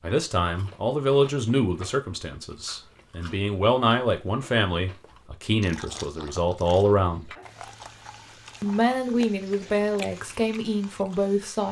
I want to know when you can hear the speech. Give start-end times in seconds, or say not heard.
0.0-7.3, 8.6-11.6.